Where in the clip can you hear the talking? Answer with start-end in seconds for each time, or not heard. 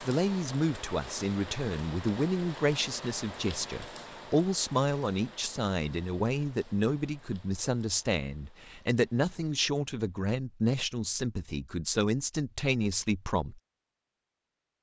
0.0-13.6.